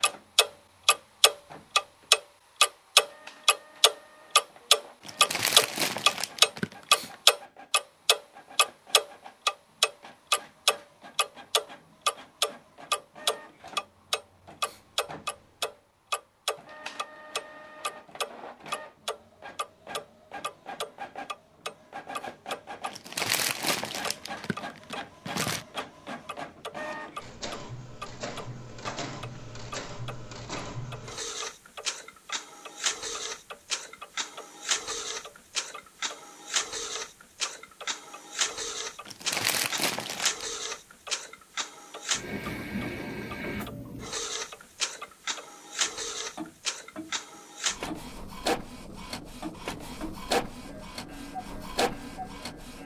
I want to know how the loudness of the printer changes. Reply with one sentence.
The volume of the printer goes up.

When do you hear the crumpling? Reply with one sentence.
The crumpling can be heard from 5.0 to 7.2 s, from 22.9 to 25.6 s and from 39.0 to 40.5 s.